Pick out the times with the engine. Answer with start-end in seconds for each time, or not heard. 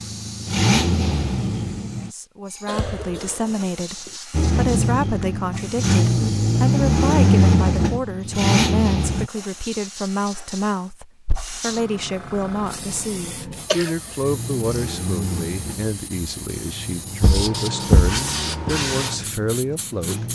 0.0-2.1, 4.3-9.3, 14.2-20.3.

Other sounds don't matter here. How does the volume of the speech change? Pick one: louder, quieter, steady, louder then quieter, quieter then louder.
steady.